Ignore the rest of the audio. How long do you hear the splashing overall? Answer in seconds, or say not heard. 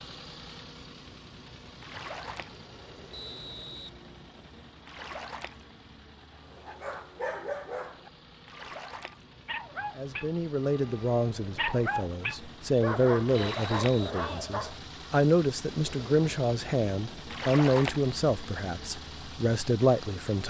4 s.